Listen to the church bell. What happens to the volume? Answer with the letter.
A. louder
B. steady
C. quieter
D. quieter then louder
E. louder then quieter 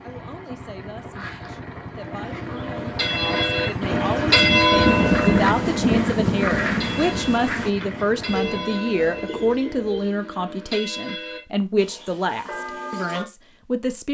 E.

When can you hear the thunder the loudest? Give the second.
5 s.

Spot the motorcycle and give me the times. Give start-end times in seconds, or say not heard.
0.0-8.6.